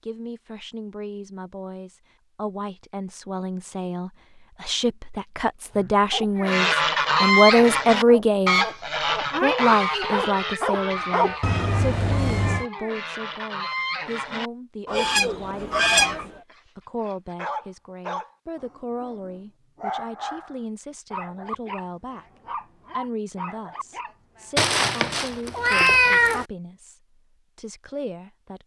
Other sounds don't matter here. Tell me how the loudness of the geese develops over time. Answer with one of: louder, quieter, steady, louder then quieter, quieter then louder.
quieter then louder.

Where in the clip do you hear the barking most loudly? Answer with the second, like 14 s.
11 s.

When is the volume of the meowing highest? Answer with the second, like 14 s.
26 s.